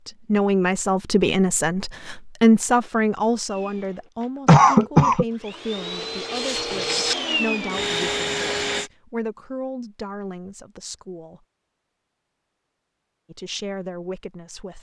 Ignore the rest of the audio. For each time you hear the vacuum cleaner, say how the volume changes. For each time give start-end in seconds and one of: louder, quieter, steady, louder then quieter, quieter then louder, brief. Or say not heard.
3.5-8.9 louder.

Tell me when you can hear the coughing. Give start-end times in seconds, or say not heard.
4.5-5.2.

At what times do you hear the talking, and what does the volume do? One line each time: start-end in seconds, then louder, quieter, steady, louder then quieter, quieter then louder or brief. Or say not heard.
0.1-11.4 quieter
13.3-14.7 brief.